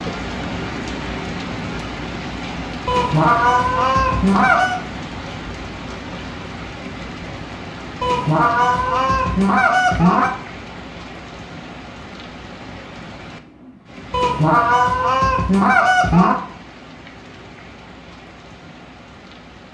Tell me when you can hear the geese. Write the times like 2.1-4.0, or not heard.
2.9-4.8, 8.0-10.3, 14.1-16.4.